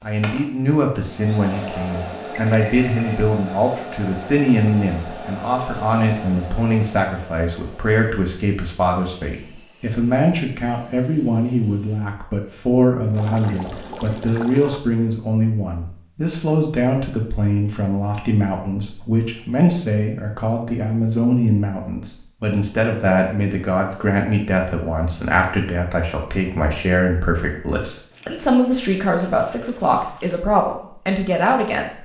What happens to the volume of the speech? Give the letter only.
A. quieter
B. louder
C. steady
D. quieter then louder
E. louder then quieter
C.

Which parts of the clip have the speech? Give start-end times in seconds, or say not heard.
0.0-32.0.